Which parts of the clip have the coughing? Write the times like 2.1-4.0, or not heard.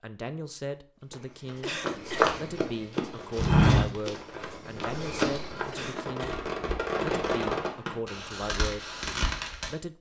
1.6-2.3, 5.7-6.4.